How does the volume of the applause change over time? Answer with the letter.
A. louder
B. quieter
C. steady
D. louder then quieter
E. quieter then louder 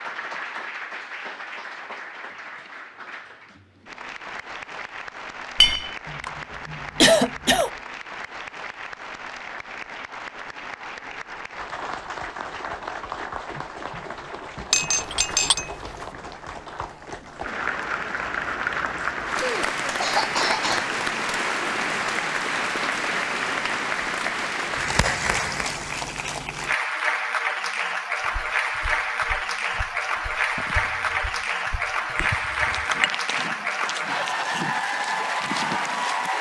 A.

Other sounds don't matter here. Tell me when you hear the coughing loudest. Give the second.
7 s.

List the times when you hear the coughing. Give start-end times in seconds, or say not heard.
6.0-7.7, 19.4-20.9, 30.6-31.2.